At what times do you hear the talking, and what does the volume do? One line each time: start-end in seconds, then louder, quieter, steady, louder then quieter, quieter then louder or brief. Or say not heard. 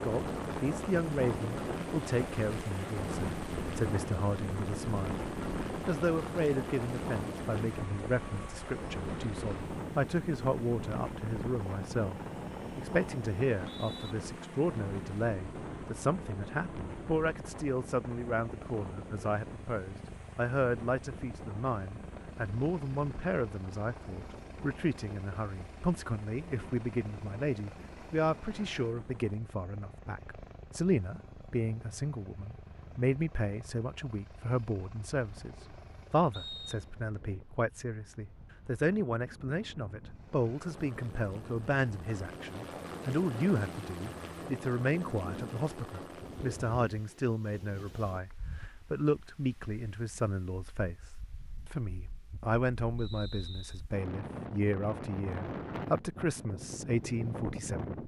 0.0-58.0 steady.